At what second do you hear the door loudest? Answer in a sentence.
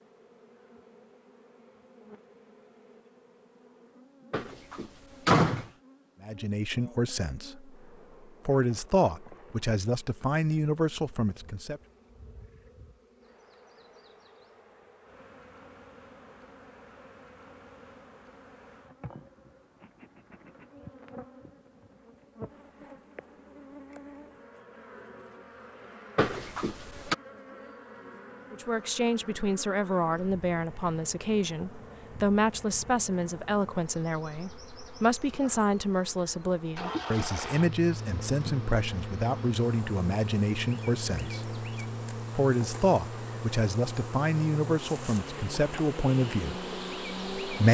The volume of the door peaks at 5 seconds.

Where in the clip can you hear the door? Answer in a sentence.
You can hear the door from 4.3 to 5.7 s and from 26.1 to 27.1 s.